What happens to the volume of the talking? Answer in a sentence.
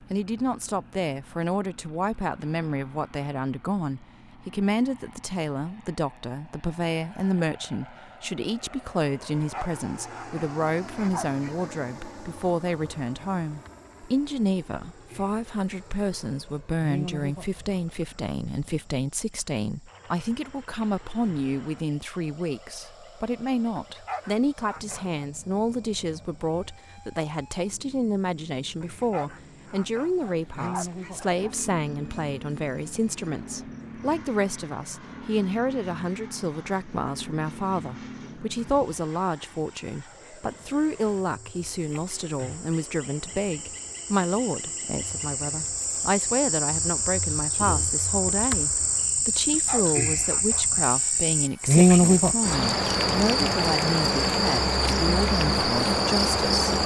The loudness of the talking stays about the same.